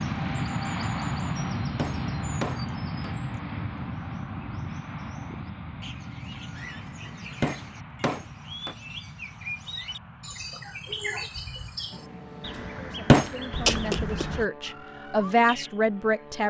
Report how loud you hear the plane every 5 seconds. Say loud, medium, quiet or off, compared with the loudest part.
loud, medium, quiet, quiet.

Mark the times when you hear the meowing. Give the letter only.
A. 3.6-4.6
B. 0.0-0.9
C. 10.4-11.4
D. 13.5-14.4
D.